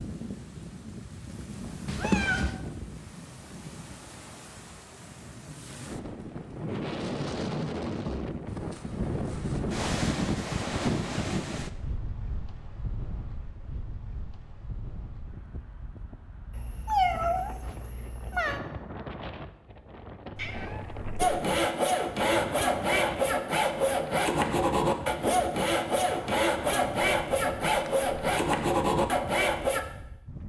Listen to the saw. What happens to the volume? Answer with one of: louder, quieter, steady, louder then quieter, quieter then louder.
steady.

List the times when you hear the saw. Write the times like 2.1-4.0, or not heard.
21.1-29.9.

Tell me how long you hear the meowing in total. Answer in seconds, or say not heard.
4 s.